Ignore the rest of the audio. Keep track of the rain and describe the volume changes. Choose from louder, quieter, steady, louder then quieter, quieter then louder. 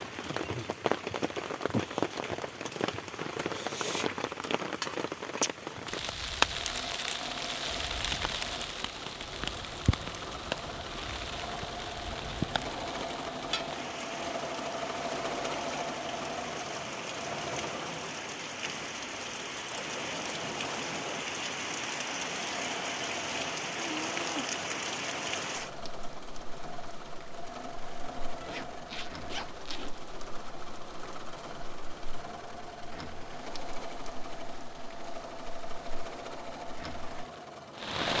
quieter.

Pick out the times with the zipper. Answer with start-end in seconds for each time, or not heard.
28.4-30.1.